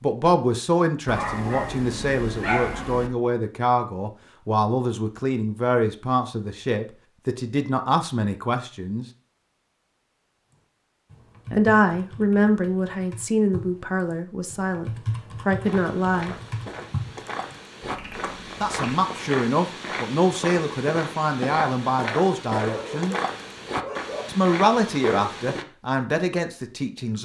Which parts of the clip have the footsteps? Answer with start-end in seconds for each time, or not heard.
15.6-25.6.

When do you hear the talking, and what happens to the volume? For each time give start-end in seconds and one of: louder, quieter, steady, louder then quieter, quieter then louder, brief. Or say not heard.
0.0-9.1 steady
11.5-16.4 quieter then louder
18.6-23.1 steady
24.2-27.2 brief.